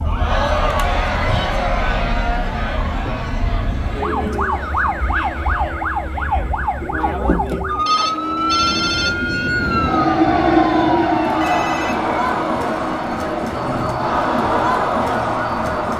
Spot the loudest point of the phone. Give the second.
9 s.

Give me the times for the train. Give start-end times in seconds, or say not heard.
8.2-15.9.